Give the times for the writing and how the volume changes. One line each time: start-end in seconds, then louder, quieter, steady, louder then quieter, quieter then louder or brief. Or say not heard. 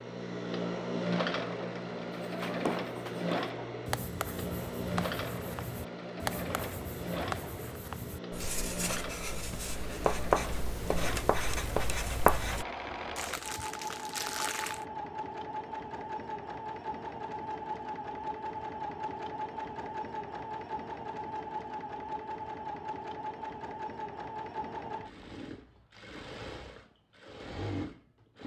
2.2-12.7 louder.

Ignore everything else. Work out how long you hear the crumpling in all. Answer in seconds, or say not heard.
2 s.